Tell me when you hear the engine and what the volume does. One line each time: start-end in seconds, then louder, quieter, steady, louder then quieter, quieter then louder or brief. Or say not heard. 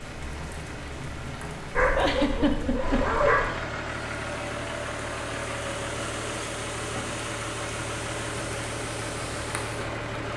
0.0-10.3 louder.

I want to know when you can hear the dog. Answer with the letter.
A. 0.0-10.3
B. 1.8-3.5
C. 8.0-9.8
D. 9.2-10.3
B.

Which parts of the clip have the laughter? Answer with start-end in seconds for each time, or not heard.
1.9-3.1.